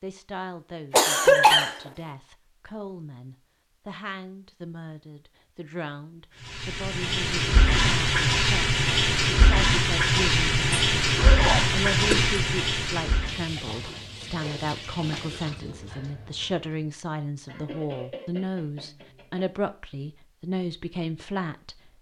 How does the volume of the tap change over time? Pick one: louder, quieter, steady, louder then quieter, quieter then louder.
quieter.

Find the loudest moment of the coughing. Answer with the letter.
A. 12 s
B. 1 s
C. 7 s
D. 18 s
B.